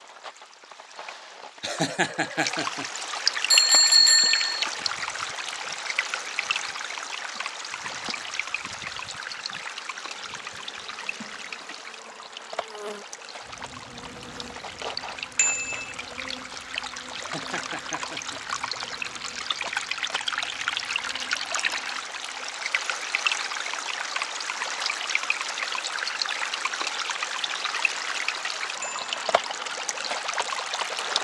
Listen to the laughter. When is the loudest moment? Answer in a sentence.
The volume of the laughter peaks at 2 seconds.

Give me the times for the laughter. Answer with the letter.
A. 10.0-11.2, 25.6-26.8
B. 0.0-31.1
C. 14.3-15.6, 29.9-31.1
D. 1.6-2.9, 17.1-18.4
D.